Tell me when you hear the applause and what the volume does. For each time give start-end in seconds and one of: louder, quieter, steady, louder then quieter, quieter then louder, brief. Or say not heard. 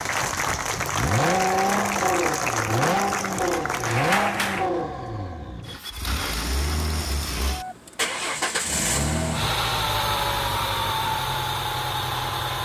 0.0-4.7 steady.